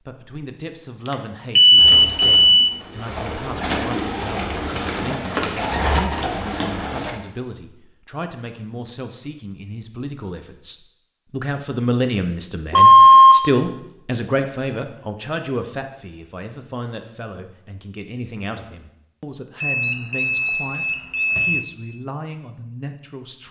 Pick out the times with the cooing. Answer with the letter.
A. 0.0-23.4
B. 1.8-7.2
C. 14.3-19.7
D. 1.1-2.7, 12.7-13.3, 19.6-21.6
B.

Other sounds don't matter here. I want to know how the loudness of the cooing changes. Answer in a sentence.
The volume of the cooing goes up.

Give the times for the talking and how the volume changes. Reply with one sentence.
The talking can be heard from 0.0 to 23.4 s, getting louder then quieter.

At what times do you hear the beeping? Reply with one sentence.
The beeping can be heard from 1.1 to 2.7 s, from 12.7 to 13.3 s and from 19.6 to 21.6 s.